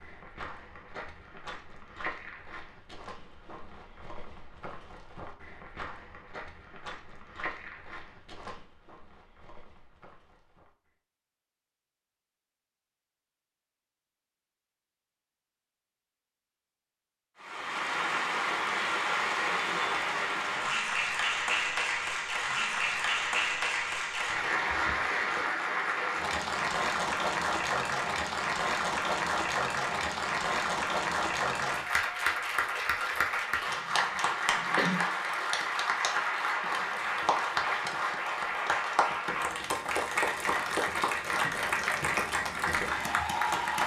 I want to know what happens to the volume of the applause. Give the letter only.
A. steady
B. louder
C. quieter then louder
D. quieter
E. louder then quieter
A.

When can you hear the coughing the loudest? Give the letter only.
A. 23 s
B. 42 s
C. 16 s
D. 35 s
D.